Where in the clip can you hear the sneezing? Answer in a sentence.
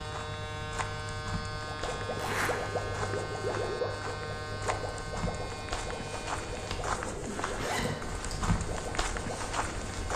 You can't hear the sneezing here.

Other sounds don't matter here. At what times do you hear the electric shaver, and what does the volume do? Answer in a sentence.
You can hear the electric shaver from 0.0 to 10.1 s, getting quieter.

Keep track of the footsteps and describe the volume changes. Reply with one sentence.
The loudness of the footsteps goes up.